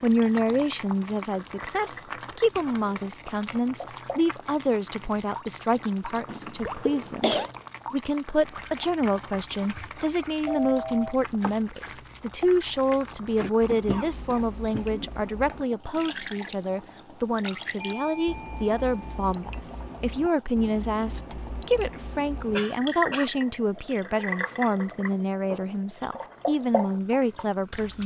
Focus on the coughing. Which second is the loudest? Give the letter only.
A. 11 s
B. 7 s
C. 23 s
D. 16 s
B.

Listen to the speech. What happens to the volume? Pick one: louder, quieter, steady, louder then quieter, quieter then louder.
steady.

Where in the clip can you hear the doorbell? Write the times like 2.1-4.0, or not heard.
10.4-11.2, 17.8-19.2.